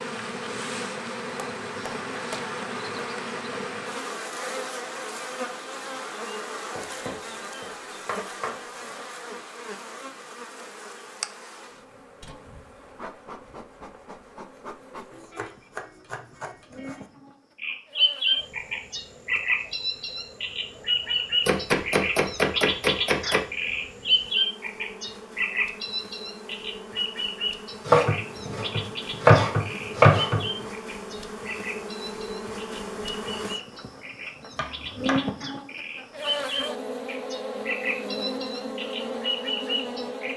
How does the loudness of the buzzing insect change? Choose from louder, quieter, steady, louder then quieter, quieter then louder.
quieter then louder.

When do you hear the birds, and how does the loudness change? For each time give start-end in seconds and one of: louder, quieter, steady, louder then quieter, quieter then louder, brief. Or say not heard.
17.6-40.3 quieter then louder.